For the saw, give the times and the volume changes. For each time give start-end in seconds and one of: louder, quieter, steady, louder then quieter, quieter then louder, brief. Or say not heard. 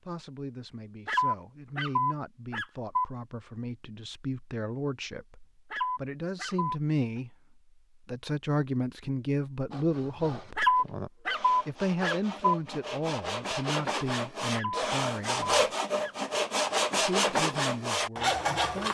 9.7-18.9 louder.